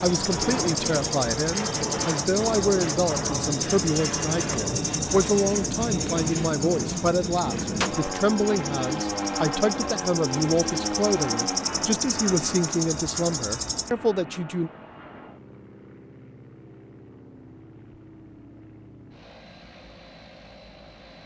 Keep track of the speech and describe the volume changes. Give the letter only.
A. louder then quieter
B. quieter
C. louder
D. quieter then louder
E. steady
E.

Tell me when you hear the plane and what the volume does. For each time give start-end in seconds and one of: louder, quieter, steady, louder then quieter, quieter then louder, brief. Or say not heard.
0.0-21.2 quieter.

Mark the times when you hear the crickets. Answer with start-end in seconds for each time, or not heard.
0.0-13.9.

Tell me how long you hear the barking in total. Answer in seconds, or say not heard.
not heard.